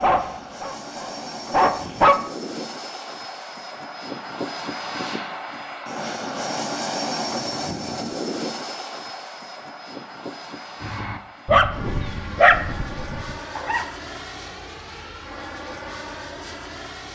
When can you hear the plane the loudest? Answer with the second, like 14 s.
7 s.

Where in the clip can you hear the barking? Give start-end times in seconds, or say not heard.
0.0-2.1, 10.8-13.8.